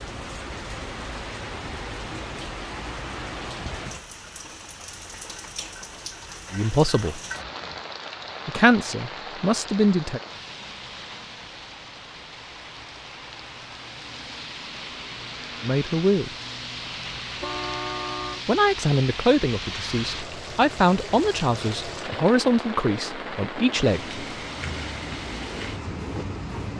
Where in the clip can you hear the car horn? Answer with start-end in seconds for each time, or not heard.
17.4-18.4.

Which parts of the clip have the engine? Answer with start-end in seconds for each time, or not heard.
24.6-26.7.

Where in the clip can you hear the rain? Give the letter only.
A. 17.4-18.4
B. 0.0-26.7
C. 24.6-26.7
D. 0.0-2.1
B.